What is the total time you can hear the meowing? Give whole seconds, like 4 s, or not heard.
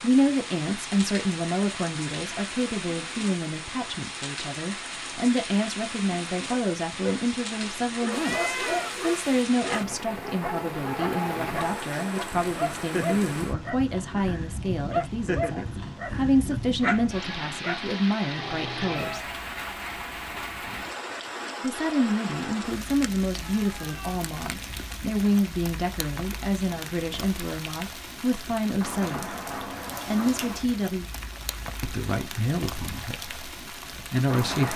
3 s.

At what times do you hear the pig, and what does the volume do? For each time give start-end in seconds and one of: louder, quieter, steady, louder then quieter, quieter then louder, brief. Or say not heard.
not heard.